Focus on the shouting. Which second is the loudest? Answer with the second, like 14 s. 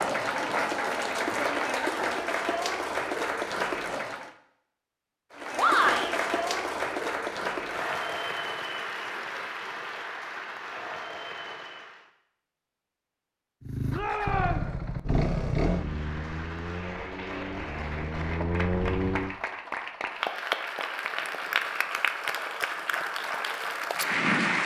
6 s.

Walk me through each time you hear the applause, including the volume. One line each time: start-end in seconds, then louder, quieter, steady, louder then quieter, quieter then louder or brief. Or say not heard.
0.0-4.3 steady
5.3-12.1 quieter
15.7-24.6 louder.